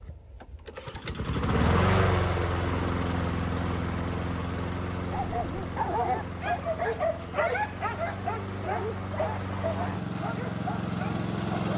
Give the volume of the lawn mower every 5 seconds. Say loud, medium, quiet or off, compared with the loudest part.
loud, medium, loud.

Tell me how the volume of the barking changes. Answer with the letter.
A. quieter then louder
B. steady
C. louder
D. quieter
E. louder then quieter
D.